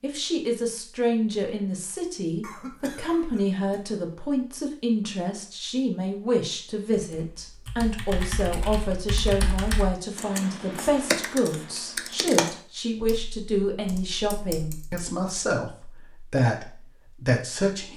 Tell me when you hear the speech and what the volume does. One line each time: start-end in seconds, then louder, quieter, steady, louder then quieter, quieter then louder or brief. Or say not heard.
0.0-17.9 steady.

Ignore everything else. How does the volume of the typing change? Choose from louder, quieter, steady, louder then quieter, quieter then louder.
louder then quieter.